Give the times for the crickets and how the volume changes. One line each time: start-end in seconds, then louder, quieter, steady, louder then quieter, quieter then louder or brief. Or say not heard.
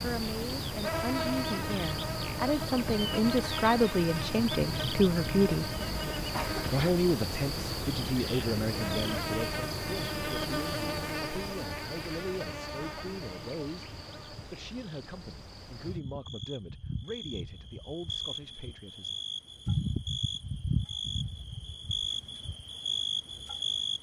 0.0-23.9 quieter then louder.